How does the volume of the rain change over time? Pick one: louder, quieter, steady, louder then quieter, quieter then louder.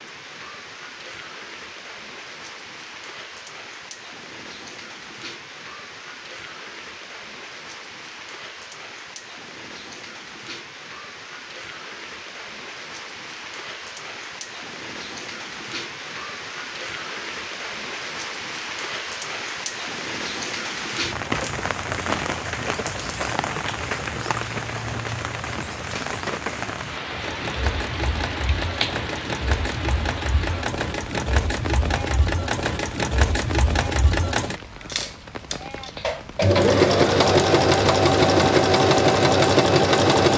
louder then quieter.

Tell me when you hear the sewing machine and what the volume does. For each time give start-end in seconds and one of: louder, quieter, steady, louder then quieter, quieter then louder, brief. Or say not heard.
27.1-40.3 louder.